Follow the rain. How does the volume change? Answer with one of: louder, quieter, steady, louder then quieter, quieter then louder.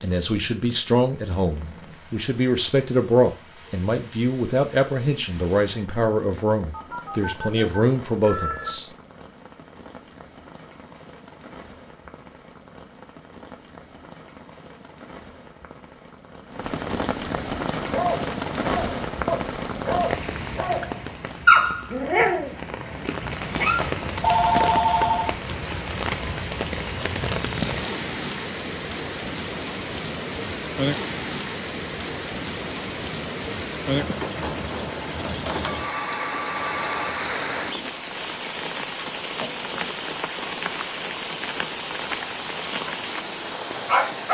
louder.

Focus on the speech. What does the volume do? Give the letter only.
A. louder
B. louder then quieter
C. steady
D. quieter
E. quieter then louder
C.